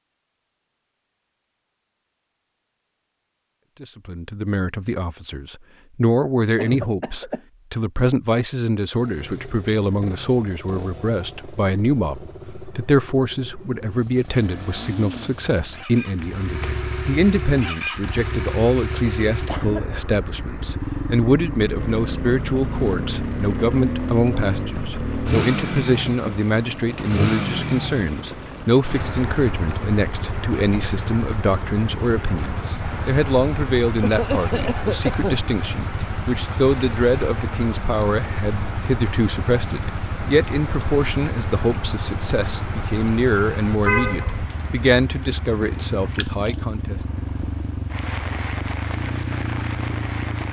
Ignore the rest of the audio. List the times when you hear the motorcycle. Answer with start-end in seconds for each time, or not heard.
8.9-50.4.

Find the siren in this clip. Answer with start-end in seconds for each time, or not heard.
not heard.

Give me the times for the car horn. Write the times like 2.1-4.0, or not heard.
43.9-44.5.